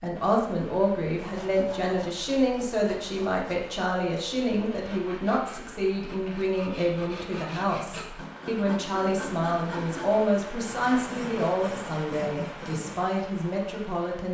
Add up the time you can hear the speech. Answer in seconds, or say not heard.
14 s.